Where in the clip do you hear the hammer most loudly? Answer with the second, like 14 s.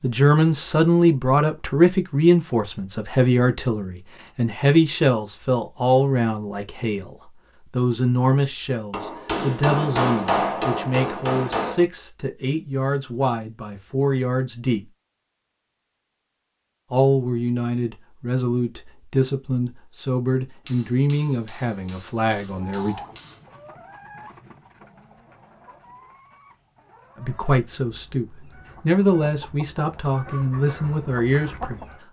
10 s.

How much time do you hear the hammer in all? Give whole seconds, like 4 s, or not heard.
6 s.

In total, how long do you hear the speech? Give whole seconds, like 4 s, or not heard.
26 s.